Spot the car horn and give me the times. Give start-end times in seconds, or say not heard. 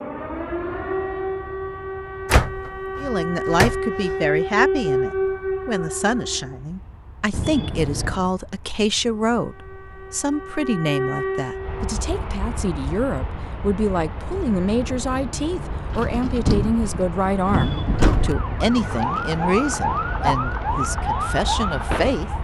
7.3-8.3, 17.4-18.4.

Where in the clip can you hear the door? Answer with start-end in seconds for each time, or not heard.
2.2-3.8, 15.9-18.4.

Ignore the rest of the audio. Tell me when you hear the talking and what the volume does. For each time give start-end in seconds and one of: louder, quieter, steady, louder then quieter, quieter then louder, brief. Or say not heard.
3.0-22.3 steady.